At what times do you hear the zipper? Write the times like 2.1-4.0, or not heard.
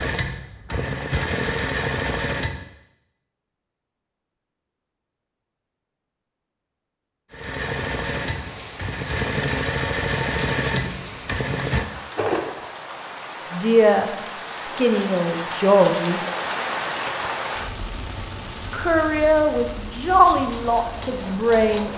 not heard.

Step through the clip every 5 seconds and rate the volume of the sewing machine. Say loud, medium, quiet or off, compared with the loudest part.
loud, loud, loud, off, medium.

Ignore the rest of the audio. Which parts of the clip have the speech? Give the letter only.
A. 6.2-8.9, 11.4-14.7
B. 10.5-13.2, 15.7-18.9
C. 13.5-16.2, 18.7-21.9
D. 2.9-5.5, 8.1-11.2
C.